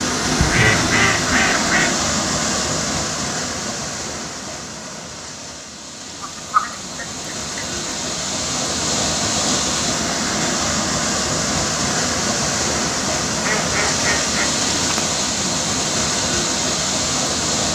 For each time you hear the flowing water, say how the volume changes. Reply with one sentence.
The flowing water can be heard from 0.0 to 17.7 s, getting quieter then louder.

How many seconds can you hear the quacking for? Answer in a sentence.
The quacking can be heard for 5 seconds in total.